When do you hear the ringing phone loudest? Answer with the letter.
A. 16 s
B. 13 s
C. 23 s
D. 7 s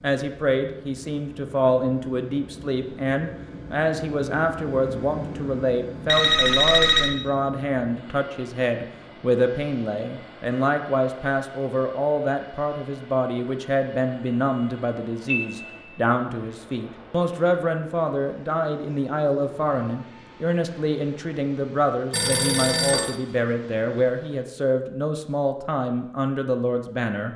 D.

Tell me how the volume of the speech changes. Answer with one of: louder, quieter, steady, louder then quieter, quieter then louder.
steady.